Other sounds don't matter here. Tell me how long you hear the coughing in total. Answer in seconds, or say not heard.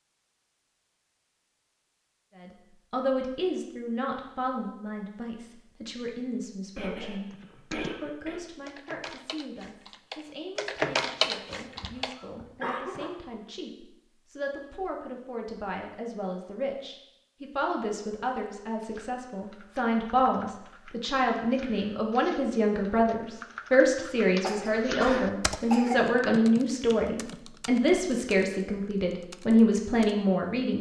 5 s.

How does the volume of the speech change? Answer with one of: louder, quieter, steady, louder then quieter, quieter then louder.
quieter then louder.